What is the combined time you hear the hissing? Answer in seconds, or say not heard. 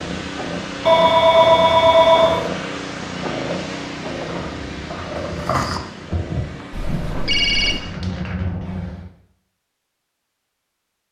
9 s.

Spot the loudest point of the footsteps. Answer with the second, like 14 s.
6 s.